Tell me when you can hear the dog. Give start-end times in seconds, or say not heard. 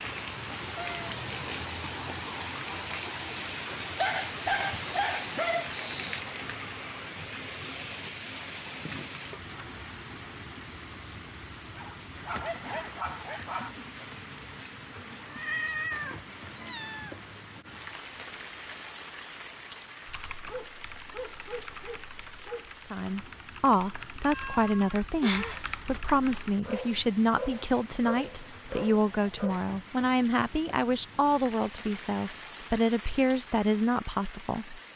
4.0-6.2, 11.8-13.8, 20.4-23.1, 26.6-29.6.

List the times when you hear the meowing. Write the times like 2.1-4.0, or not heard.
0.8-1.2, 14.8-17.3, 24.2-25.8.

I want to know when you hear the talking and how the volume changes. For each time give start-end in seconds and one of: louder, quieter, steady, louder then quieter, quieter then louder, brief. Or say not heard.
22.9-34.8 steady.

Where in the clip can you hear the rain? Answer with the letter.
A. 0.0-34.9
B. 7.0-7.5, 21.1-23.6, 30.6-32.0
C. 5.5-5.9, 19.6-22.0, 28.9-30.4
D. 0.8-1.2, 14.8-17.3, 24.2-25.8
A.